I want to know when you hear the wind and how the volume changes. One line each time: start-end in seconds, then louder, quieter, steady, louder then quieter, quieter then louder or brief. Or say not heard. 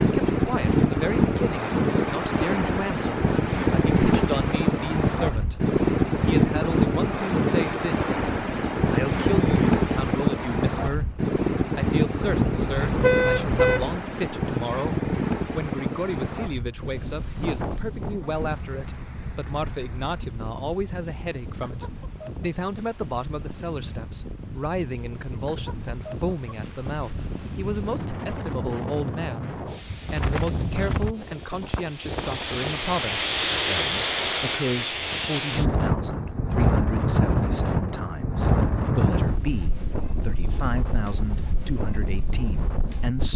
0.0-43.3 quieter then louder.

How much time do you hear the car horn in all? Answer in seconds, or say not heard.
2 s.